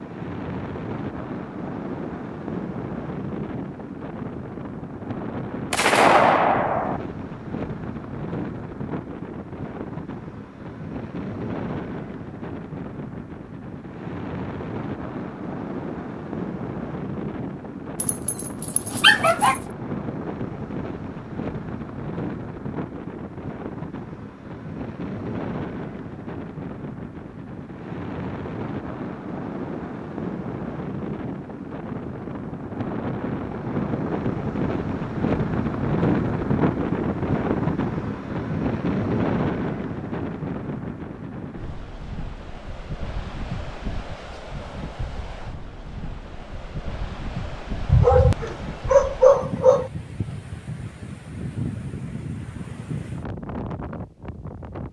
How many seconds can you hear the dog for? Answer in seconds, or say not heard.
4 s.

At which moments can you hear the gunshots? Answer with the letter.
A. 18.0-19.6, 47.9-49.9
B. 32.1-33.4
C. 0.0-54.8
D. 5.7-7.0
D.